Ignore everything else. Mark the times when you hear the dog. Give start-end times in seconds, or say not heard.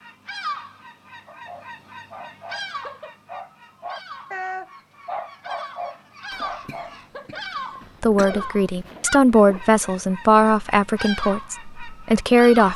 1.2-7.4.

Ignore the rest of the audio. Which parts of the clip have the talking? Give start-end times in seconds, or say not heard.
8.0-12.7.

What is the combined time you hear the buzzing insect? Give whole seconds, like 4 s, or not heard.
not heard.